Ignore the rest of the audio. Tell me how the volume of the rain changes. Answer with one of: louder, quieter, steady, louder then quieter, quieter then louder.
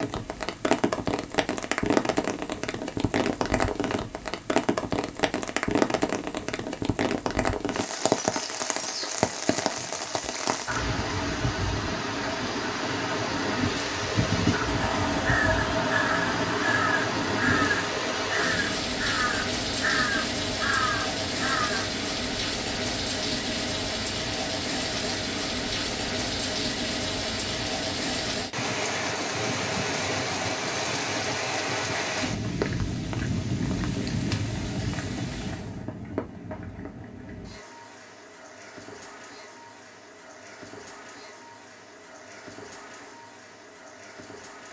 quieter.